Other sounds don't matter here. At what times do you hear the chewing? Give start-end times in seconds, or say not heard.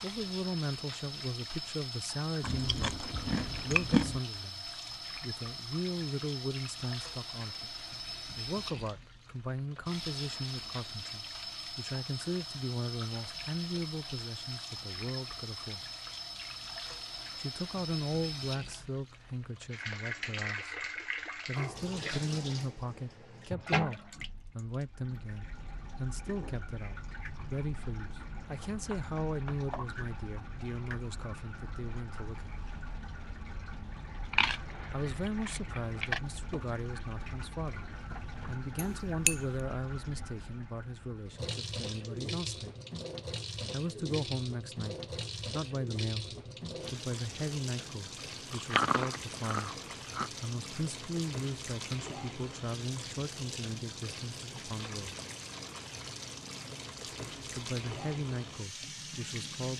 2.4-4.2, 34.3-36.2, 48.5-50.3.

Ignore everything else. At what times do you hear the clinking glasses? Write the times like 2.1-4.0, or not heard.
38.8-39.4.